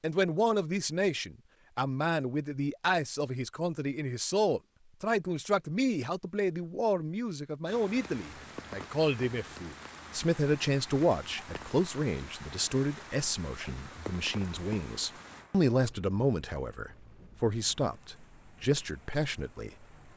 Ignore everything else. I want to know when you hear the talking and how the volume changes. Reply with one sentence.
You can hear the talking from 0.0 to 19.9 s, at a steady volume.